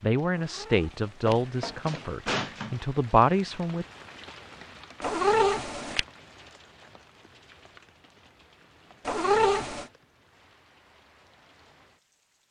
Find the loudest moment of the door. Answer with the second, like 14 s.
2 s.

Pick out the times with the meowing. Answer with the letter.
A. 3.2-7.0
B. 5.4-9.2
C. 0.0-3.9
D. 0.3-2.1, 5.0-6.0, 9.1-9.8
D.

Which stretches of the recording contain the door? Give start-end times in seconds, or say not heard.
0.9-2.9.